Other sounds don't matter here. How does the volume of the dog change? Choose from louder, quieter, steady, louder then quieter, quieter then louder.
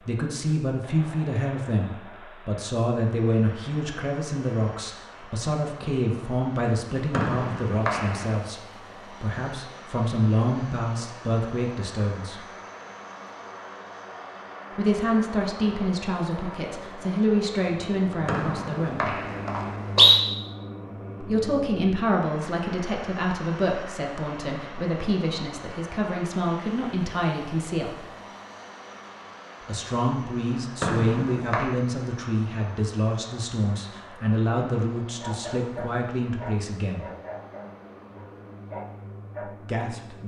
quieter then louder.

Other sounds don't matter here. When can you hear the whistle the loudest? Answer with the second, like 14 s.
20 s.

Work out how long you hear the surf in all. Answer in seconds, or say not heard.
not heard.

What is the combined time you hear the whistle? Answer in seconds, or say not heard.
4 s.